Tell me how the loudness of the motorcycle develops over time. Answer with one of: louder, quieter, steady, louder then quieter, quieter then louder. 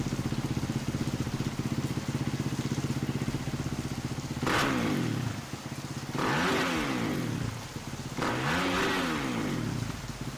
steady.